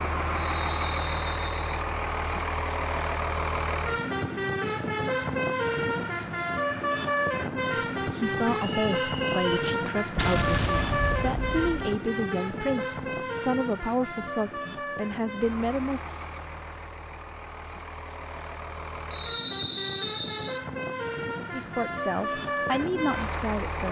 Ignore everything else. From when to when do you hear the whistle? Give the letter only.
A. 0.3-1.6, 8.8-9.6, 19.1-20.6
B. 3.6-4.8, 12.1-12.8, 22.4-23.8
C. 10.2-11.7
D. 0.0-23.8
A.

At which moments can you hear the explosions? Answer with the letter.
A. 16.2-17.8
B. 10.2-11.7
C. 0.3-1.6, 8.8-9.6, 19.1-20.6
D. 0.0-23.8
B.